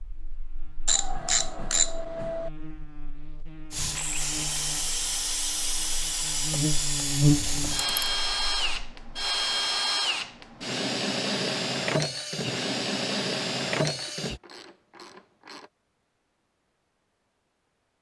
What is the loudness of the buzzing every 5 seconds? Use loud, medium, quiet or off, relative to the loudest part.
quiet, loud, off, off.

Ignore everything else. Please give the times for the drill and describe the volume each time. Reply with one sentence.
You can hear the drill from 3.7 to 14.4 s, at a steady volume.